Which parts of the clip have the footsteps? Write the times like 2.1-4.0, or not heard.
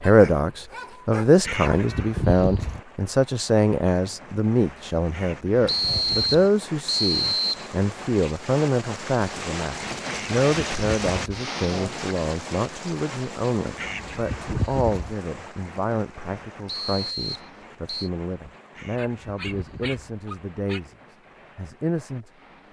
not heard.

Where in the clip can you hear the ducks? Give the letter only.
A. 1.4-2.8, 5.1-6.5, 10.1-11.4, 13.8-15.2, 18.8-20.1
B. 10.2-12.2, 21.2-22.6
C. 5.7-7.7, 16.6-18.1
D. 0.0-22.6
A.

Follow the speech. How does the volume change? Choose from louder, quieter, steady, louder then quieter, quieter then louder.
quieter.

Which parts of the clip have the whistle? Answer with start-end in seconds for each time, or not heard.
5.7-7.7, 16.6-18.1.